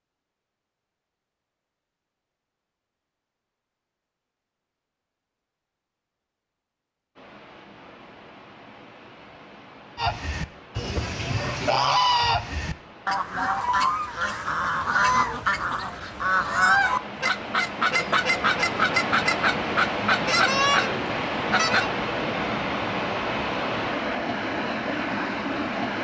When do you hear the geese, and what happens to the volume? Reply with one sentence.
The geese can be heard from 9.9 to 21.9 s, at a steady volume.